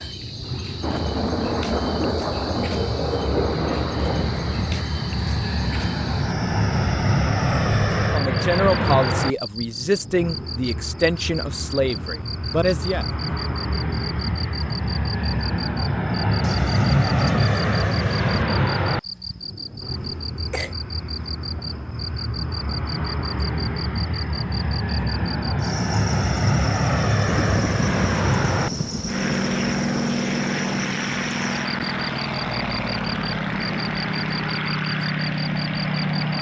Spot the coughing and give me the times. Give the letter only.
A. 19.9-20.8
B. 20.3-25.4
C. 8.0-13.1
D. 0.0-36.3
A.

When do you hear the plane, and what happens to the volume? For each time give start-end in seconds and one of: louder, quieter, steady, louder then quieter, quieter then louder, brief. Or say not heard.
0.0-36.3 steady.